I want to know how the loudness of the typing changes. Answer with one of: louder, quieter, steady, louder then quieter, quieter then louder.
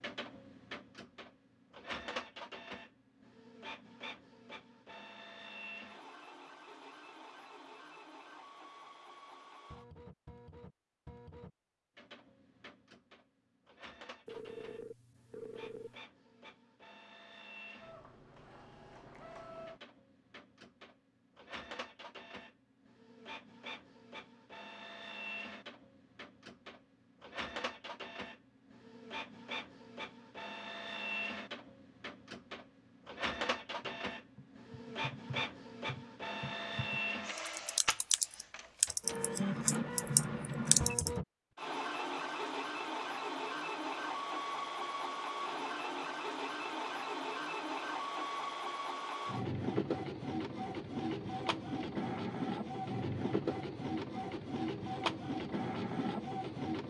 louder.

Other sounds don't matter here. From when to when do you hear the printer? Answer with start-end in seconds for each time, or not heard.
0.0-56.8.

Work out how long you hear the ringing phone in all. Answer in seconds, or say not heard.
2 s.